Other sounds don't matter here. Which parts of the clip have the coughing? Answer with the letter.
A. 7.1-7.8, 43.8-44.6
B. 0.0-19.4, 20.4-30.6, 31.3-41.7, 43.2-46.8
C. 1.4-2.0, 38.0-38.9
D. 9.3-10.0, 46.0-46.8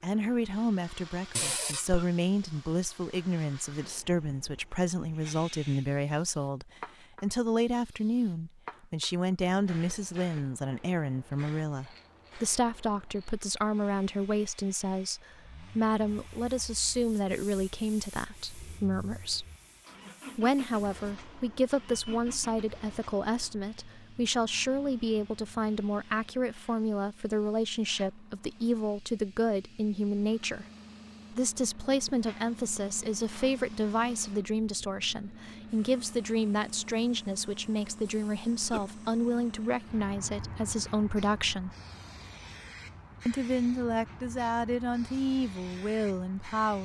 C.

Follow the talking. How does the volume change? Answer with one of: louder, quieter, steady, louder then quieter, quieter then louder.
steady.